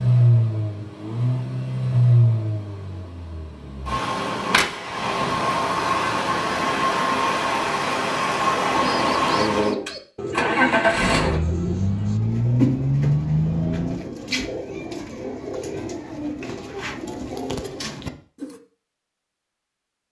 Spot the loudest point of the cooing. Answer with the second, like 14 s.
13 s.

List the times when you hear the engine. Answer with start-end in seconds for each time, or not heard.
0.0-14.1.